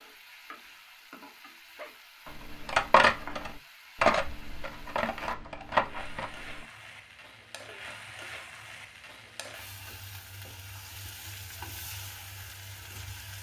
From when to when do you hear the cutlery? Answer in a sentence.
The cutlery can be heard from 2.2 to 6.6 s.